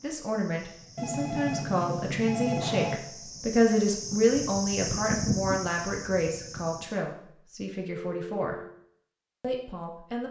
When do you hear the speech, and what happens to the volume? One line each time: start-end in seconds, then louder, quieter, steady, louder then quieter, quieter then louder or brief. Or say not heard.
0.0-8.6 louder then quieter
9.4-10.2 brief.